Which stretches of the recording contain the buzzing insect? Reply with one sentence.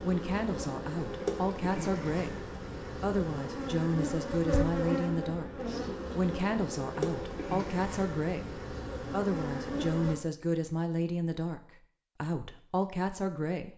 The buzzing insect can be heard from 0.0 to 10.2 s.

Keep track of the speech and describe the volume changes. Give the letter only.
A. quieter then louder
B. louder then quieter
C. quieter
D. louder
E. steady
E.